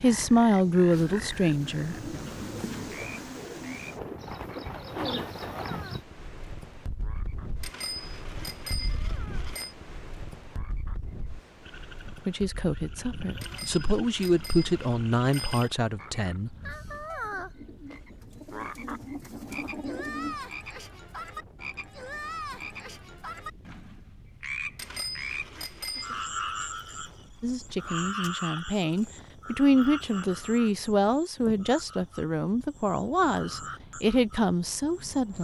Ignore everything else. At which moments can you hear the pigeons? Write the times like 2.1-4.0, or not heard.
0.9-6.0, 17.2-20.4.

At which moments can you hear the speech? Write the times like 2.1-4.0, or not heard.
0.0-2.1, 12.2-16.5, 27.4-35.3.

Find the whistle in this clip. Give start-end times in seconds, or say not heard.
not heard.